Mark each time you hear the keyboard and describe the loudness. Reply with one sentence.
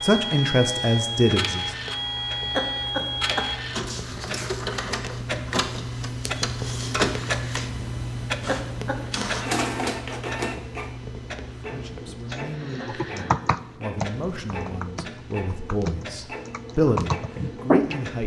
You can hear the keyboard from 12.3 to 18.2 s, getting quieter then louder.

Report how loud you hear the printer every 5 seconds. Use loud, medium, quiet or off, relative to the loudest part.
loud, loud, medium, medium.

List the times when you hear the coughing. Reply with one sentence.
You can hear the coughing from 2.5 to 3.5 s, from 8.4 to 9.1 s and from 12.8 to 13.3 s.